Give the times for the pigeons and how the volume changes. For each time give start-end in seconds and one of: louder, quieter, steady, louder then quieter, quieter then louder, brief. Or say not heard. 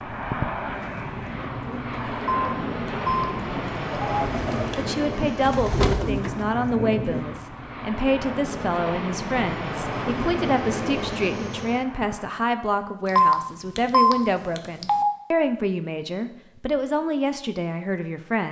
0.7-7.5 louder.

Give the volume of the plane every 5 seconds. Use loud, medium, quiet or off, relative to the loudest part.
loud, loud, loud, off.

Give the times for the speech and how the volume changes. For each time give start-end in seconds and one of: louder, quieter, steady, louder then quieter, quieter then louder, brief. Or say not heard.
4.8-18.4 steady.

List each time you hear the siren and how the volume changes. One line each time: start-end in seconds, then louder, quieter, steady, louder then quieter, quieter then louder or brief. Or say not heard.
not heard.